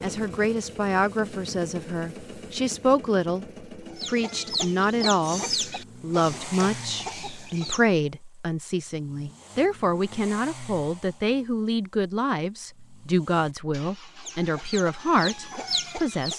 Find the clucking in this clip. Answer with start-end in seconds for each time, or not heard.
3.9-7.8, 14.1-16.3.